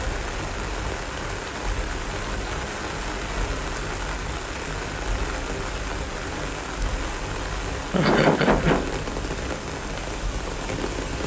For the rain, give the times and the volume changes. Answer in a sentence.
You can hear the rain from 0.0 to 11.2 s, at a steady volume.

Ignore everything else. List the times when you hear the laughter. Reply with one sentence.
You can hear the laughter from 7.9 to 8.9 s.